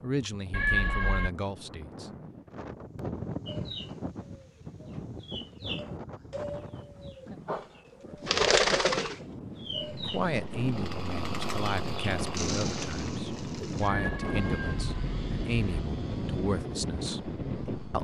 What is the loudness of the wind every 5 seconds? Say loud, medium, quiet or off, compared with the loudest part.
medium, medium, loud, loud.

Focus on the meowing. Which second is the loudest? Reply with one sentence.
The loudest moment of the meowing is at 1 second.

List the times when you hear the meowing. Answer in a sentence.
The meowing can be heard from 0.5 to 1.3 s and from 13.8 to 15.8 s.